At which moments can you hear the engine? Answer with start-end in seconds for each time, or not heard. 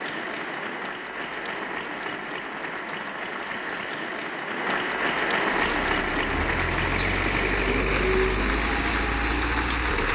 5.5-10.1.